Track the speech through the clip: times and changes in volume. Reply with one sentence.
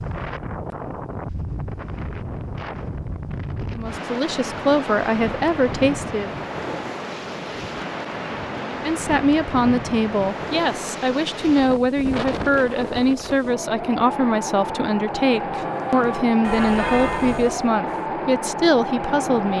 You can hear the speech briefly from 3.7 to 6.3 s; and from 8.7 to 19.5 s, at a steady volume.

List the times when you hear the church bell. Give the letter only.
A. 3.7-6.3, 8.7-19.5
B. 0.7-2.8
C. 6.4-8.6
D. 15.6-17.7
D.